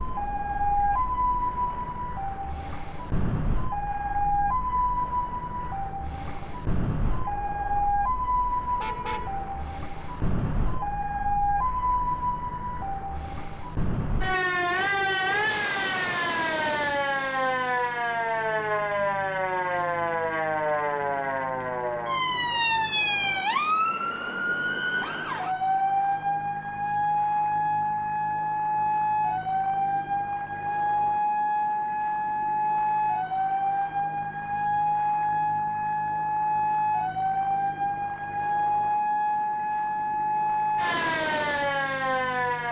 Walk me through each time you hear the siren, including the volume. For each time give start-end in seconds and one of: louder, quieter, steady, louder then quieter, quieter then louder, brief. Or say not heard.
0.0-42.6 steady.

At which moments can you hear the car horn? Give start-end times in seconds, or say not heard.
8.8-9.4.